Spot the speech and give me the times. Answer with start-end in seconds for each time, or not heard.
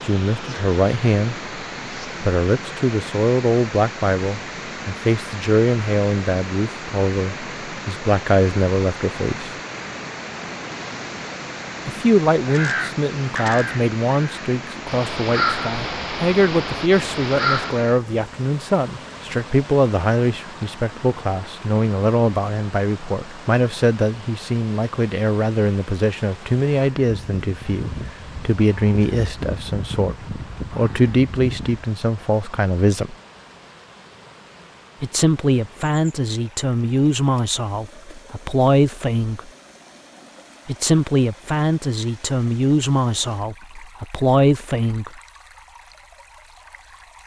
0.0-1.6, 2.2-9.5, 11.8-33.1, 35.0-39.5, 40.6-45.2.